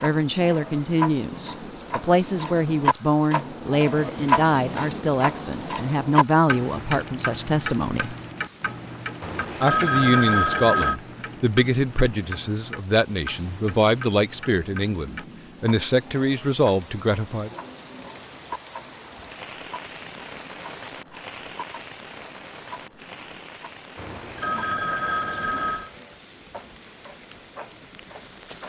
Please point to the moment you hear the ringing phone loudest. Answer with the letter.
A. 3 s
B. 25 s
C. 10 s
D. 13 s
C.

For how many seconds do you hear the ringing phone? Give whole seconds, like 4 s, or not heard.
4 s.